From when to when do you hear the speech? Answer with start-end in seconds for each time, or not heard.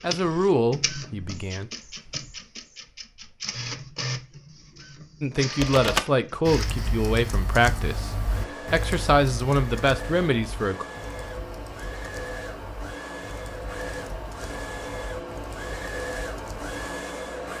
0.0-1.7, 5.2-10.8.